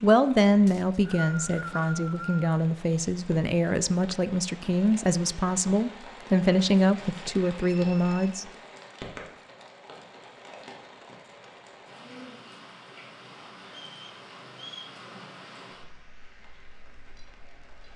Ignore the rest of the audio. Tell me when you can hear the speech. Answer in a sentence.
The speech can be heard from 0.0 to 8.4 s.